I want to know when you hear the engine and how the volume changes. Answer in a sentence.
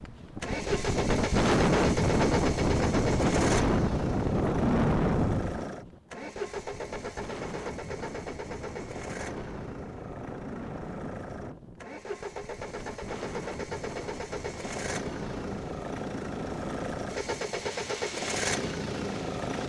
The engine can be heard from 0.2 to 19.6 s, getting quieter then louder.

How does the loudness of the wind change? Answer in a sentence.
The volume of the wind goes down.